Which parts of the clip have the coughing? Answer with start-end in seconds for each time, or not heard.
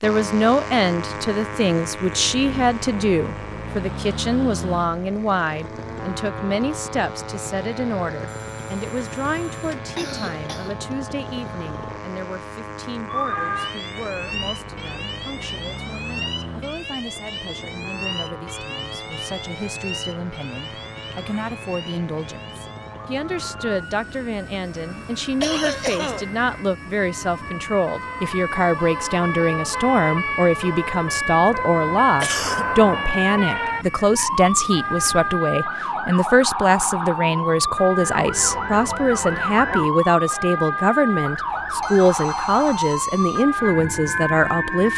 9.9-10.8, 25.4-26.2, 32.2-32.6.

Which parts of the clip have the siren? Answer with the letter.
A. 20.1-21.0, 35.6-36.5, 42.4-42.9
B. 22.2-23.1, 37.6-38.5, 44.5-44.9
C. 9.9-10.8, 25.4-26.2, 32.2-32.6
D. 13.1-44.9
D.